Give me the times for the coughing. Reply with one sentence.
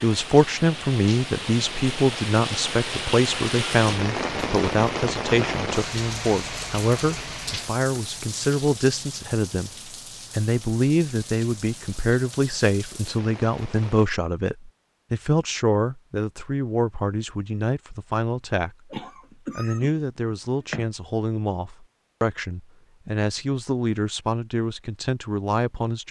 You can hear the coughing from 18.9 to 20.9 s.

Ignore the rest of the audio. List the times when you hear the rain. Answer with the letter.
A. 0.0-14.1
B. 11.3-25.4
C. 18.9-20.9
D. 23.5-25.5
A.